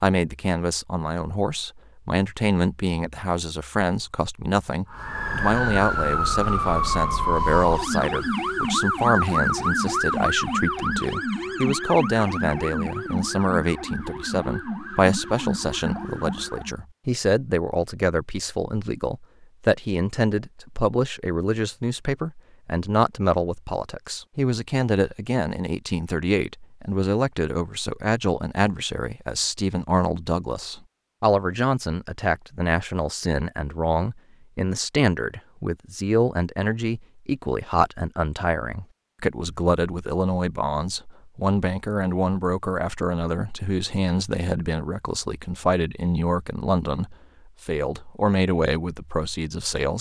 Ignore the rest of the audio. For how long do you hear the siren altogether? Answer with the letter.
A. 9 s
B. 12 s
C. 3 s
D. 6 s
B.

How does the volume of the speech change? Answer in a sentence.
The loudness of the speech stays about the same.